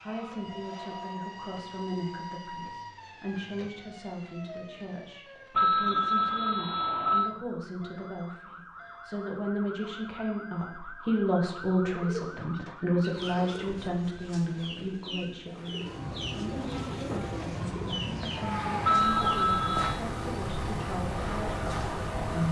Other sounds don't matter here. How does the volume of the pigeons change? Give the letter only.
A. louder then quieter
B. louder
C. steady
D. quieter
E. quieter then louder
B.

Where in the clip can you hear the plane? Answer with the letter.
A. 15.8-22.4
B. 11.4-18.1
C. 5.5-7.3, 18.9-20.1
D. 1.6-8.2
A.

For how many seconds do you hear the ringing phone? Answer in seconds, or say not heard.
3 s.